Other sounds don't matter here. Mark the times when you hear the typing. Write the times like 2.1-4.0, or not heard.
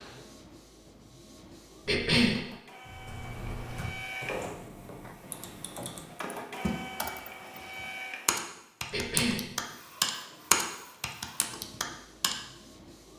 2.9-12.3.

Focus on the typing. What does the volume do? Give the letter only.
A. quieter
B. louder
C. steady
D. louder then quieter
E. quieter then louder
B.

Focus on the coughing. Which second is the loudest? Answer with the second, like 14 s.
2 s.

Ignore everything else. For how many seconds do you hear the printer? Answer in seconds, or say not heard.
13 s.